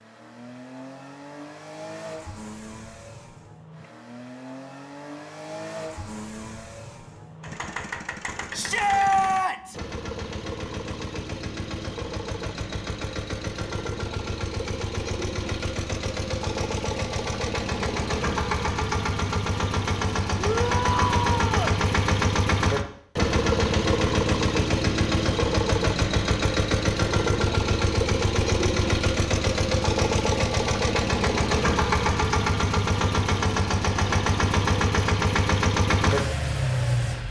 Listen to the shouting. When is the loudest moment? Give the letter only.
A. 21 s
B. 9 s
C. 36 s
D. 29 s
B.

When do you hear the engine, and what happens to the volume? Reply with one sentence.
You can hear the engine from 0.0 to 37.2 s, getting louder.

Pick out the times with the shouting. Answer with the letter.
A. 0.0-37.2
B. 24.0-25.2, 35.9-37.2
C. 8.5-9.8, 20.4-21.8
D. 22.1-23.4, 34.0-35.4
C.